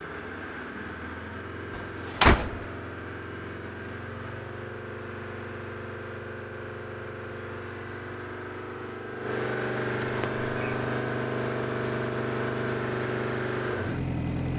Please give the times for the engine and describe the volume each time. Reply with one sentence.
The engine can be heard from 0.0 to 14.5 s, getting louder.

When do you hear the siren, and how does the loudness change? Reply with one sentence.
The siren can't be heard in this clip.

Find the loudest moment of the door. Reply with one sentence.
The loudest moment of the door is at 2 seconds.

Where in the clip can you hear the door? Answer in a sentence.
You can hear the door from 1.8 to 2.6 s and from 10.0 to 10.8 s.